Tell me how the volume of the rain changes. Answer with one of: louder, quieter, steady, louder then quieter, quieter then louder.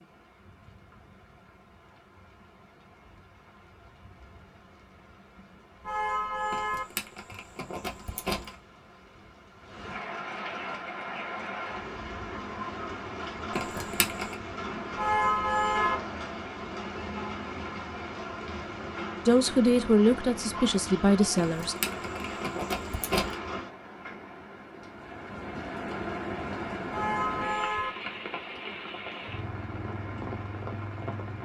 louder.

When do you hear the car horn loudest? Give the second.
15 s.